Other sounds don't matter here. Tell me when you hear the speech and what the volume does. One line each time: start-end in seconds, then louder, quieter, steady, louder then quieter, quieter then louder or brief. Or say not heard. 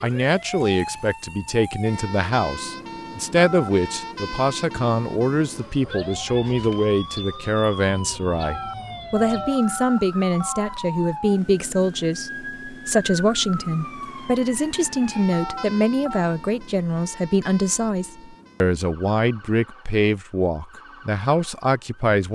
0.0-22.3 steady.